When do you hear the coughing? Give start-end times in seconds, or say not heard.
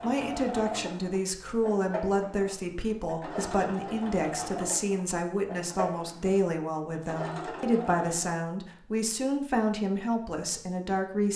not heard.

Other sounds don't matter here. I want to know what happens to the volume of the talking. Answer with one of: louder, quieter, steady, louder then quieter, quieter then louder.
steady.